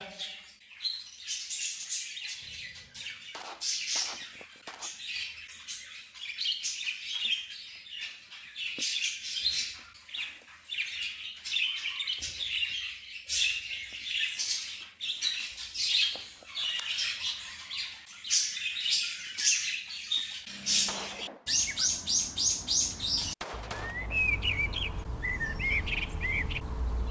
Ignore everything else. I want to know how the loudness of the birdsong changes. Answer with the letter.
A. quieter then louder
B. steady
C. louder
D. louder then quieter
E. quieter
C.